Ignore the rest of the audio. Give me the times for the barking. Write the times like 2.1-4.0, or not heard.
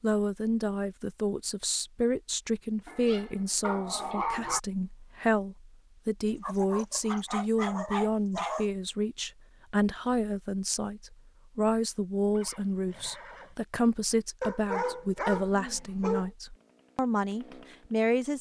2.9-4.6, 6.4-8.7, 14.4-16.3.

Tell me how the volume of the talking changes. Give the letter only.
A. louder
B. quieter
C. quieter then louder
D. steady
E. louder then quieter
D.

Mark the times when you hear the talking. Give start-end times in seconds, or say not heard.
0.0-18.3.